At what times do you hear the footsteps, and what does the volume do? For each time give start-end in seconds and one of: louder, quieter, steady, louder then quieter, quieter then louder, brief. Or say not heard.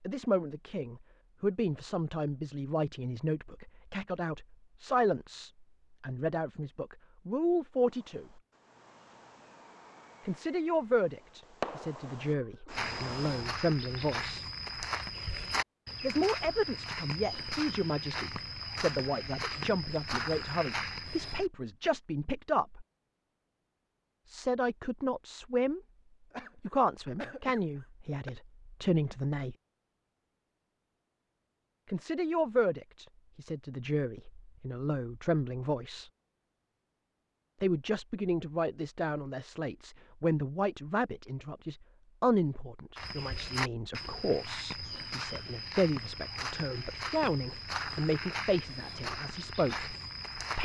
12.7-21.4 steady
43.0-50.6 steady.